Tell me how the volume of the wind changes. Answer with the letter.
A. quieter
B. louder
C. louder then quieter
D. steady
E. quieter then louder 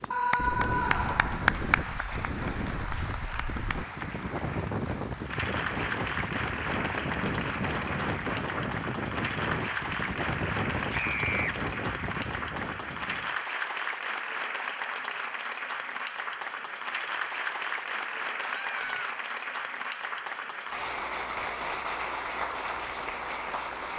D.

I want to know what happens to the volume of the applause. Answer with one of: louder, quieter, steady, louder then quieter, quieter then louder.
steady.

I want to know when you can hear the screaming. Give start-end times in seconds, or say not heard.
0.1-1.5, 10.9-11.6, 18.4-19.1.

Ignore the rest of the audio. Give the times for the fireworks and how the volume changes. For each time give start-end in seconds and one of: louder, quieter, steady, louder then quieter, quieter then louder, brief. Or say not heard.
not heard.